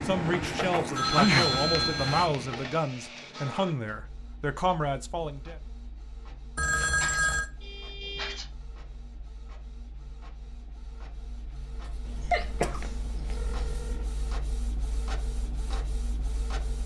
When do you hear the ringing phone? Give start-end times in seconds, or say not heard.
0.9-2.3, 6.5-7.5, 12.1-14.1.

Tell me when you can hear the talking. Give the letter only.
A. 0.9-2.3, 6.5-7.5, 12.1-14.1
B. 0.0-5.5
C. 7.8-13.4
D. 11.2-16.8
B.